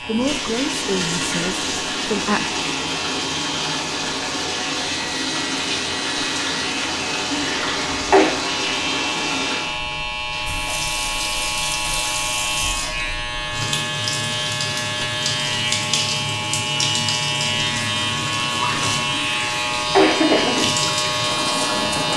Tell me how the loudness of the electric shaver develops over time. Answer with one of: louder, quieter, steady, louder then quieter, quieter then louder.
louder.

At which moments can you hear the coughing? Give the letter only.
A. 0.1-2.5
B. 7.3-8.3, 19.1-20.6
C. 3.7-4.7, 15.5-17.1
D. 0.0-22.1
B.